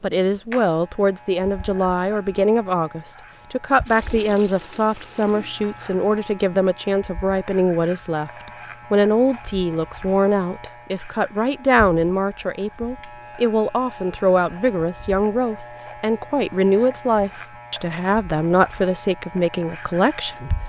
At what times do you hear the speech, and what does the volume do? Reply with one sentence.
You can hear the speech from 0.0 to 20.6 s, at a steady volume.